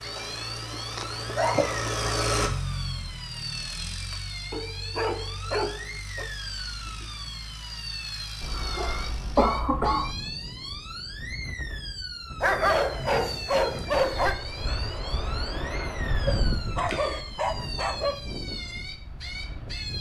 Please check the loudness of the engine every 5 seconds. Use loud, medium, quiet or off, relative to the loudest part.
loud, medium, off, off.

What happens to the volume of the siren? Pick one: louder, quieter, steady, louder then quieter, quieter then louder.
steady.